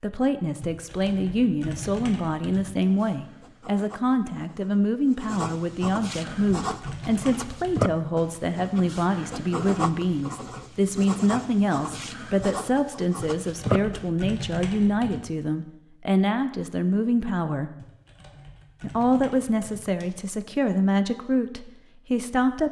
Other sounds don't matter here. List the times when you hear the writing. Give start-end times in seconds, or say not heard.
2.9-14.1.